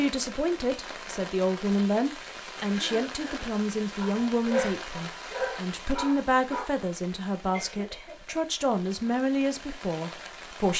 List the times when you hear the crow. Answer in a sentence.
The crow can't be heard in this clip.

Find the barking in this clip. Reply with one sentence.
The barking can be heard from 4.0 to 6.7 s.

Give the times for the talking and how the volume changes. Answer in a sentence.
The talking can be heard from 0.0 to 10.7 s, at a steady volume.